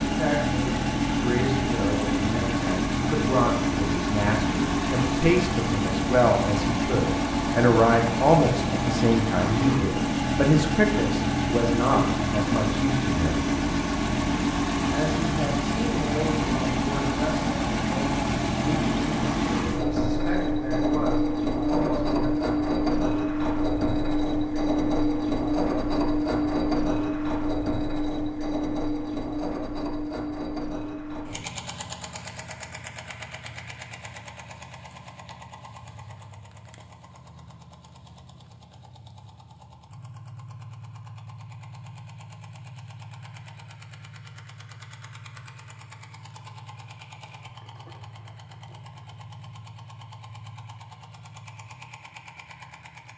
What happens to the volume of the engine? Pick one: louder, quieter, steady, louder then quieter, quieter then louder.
quieter.